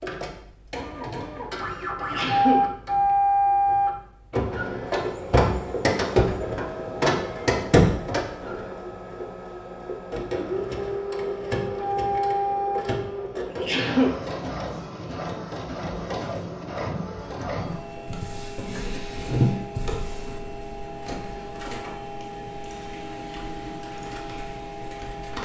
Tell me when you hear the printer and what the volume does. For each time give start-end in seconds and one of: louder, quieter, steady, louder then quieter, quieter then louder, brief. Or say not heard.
0.0-25.4 quieter.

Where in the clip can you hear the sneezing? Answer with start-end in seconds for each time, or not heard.
1.9-2.7, 13.4-14.2.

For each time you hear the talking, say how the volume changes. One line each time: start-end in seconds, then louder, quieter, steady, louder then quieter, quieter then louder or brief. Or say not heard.
not heard.